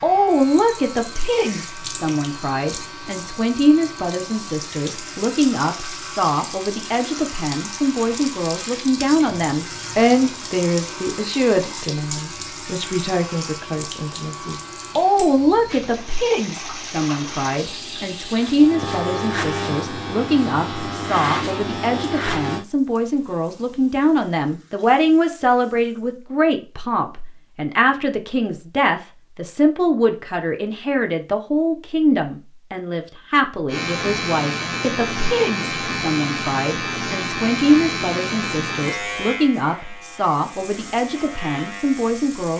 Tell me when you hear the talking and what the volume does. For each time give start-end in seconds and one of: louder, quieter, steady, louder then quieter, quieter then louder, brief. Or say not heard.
0.0-42.5 steady.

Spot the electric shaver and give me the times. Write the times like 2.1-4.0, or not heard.
0.0-22.6, 33.6-42.5.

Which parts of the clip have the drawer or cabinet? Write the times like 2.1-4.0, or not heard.
not heard.